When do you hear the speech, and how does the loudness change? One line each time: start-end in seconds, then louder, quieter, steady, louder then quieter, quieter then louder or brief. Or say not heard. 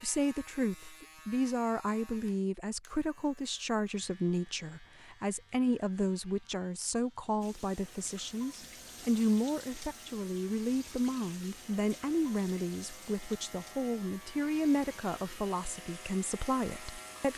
0.0-17.3 steady.